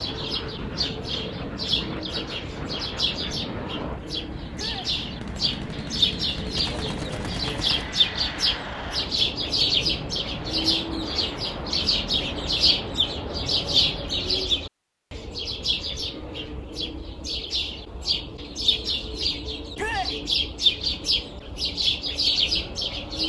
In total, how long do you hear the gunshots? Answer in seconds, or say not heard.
3 s.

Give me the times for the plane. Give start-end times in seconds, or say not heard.
0.0-14.4.